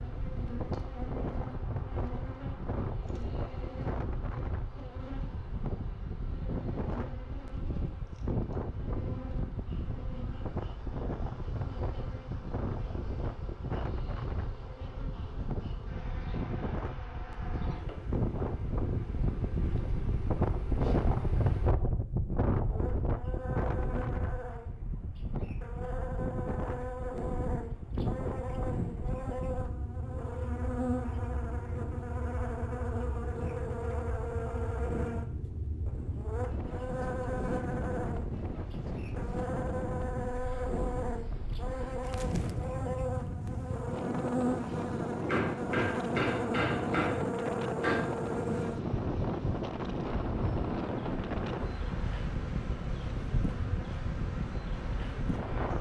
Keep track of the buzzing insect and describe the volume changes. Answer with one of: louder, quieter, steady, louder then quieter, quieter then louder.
louder.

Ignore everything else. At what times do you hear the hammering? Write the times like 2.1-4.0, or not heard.
45.2-48.0.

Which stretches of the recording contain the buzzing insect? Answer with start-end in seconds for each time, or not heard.
0.0-55.7.